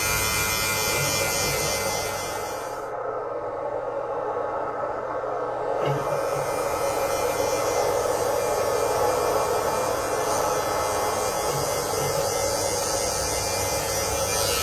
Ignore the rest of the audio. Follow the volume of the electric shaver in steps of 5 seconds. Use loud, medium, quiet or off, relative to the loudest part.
loud, medium, loud.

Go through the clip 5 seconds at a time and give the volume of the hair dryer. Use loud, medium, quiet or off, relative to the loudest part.
medium, loud, loud.